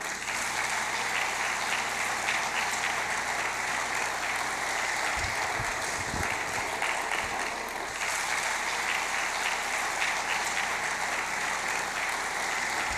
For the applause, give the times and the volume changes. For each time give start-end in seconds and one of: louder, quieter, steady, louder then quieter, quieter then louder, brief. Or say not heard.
0.0-12.9 steady.